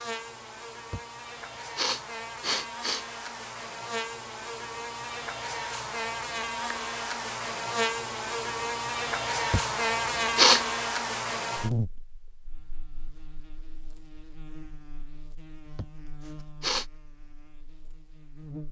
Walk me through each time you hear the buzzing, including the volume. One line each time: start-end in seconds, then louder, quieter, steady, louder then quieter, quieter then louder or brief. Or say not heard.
0.0-18.6 louder then quieter.